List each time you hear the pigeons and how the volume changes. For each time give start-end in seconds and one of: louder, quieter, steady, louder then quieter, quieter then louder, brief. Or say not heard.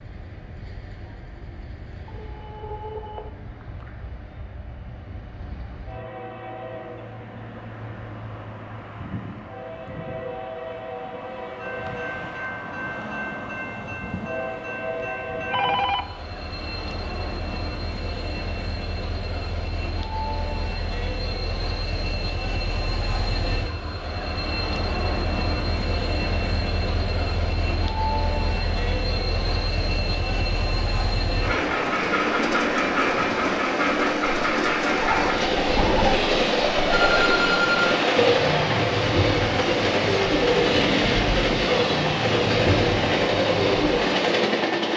35.0-44.0 steady.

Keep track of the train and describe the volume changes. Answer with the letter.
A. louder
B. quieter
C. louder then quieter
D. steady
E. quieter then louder
A.